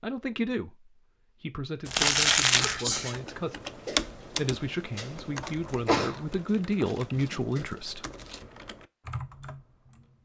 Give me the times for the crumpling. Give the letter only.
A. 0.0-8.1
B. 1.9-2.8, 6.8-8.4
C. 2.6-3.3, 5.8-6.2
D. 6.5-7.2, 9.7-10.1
B.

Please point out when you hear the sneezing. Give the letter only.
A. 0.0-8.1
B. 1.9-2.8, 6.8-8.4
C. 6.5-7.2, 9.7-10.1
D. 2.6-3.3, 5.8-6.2
D.